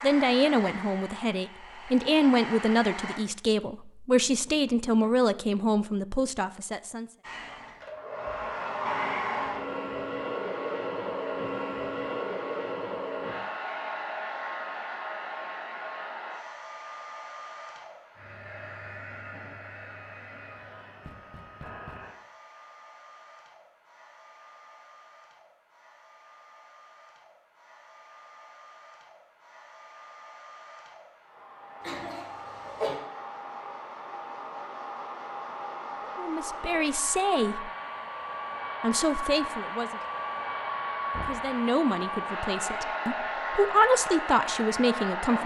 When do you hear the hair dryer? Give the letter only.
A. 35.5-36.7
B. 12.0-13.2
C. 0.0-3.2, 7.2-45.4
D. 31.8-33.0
C.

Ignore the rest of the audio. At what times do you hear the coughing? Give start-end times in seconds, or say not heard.
31.8-33.0.